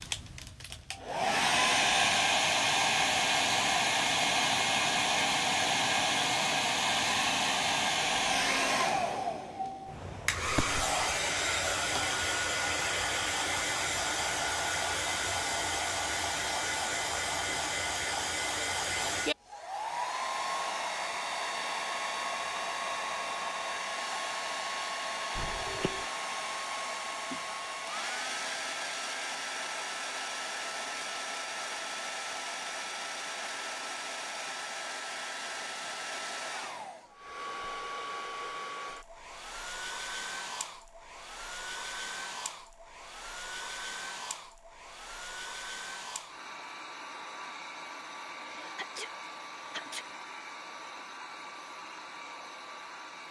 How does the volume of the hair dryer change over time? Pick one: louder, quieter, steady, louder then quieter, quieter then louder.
quieter.